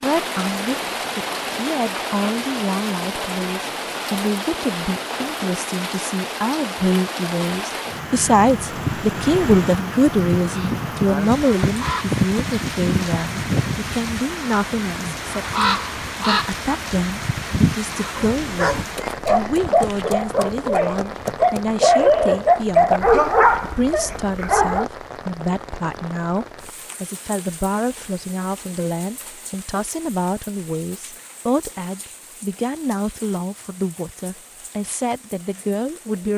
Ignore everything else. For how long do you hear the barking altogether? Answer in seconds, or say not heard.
7 s.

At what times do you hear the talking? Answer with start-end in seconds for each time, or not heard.
0.0-36.3.